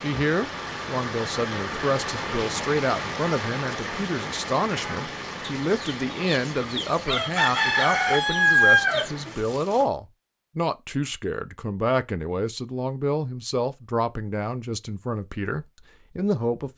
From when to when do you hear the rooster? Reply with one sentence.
You can hear the rooster from 5.4 to 9.1 s.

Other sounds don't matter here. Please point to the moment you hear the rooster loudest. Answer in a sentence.
The volume of the rooster peaks at 9 seconds.